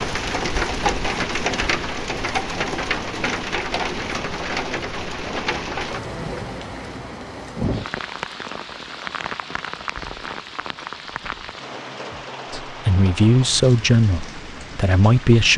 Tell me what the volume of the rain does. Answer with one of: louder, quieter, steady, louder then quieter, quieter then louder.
quieter.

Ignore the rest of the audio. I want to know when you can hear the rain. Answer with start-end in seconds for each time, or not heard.
0.0-15.5.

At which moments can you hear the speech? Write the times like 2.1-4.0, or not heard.
12.5-15.5.